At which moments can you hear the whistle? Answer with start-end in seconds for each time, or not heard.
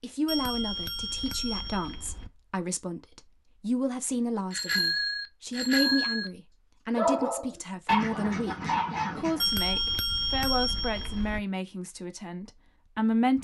not heard.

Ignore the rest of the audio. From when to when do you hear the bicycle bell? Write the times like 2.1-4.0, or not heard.
0.2-2.3, 4.5-6.3, 9.4-11.4.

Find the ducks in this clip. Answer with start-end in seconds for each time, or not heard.
8.0-9.5.